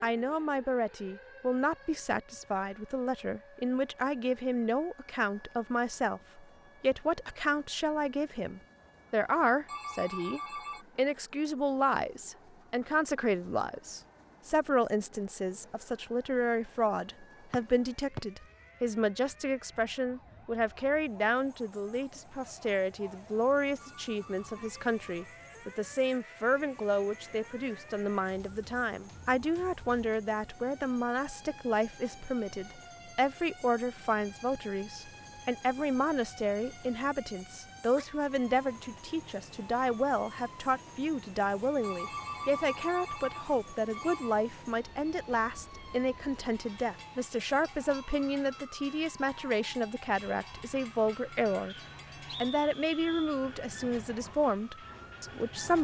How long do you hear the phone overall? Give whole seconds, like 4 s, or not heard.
5 s.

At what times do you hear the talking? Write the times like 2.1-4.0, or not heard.
0.0-51.8, 52.4-55.7.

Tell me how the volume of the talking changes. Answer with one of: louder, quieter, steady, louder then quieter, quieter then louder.
steady.